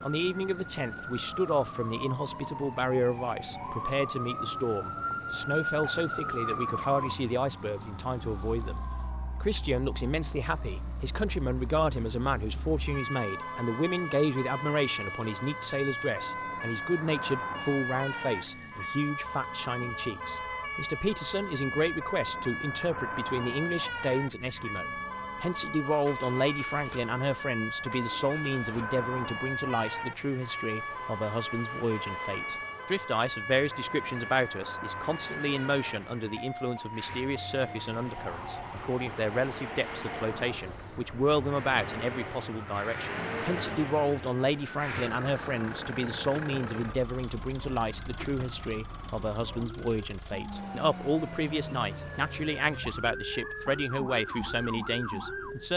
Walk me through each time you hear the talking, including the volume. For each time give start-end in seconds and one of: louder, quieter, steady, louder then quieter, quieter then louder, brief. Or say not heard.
0.0-55.7 steady.